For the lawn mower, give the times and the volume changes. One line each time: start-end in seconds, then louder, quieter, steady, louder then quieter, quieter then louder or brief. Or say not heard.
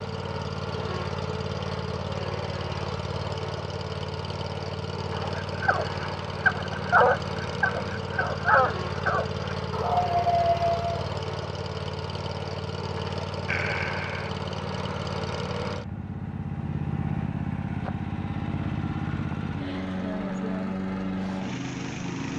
0.0-22.3 steady.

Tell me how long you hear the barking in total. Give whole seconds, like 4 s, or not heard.
6 s.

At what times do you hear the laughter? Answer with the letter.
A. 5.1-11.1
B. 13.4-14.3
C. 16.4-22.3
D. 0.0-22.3
B.